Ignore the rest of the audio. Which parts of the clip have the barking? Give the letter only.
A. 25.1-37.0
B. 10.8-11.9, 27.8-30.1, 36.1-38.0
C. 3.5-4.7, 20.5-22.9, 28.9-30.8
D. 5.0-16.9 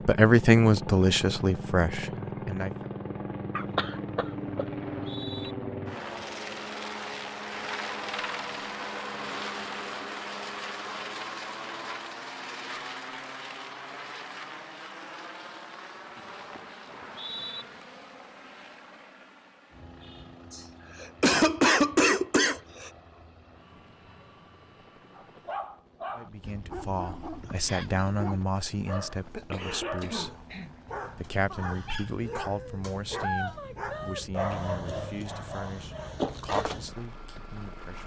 A.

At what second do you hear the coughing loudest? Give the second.
22 s.